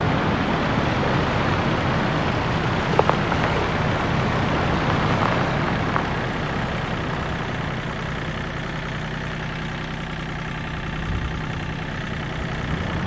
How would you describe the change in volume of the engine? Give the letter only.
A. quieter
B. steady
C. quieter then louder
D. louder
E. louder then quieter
B.